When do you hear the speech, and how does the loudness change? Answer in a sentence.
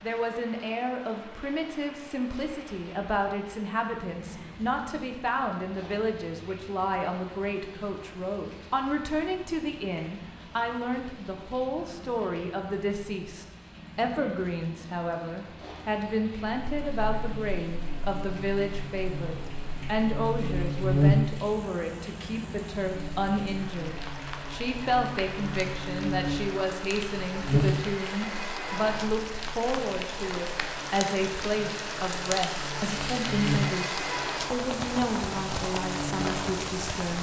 The speech can be heard from 0.0 to 37.1 s, at a steady volume.